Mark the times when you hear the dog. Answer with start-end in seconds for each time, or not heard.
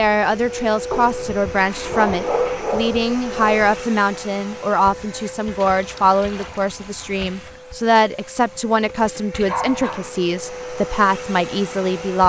0.9-3.8, 9.4-10.1.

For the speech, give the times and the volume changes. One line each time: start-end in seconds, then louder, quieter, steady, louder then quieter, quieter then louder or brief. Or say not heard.
0.0-12.2 steady.